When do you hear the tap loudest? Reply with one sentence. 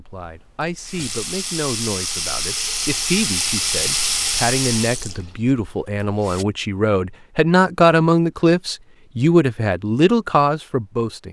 The loudest moment of the tap is at 4 seconds.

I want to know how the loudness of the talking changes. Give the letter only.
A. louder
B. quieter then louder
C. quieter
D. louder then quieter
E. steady
A.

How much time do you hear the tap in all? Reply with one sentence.
You can hear the tap for 6 seconds altogether.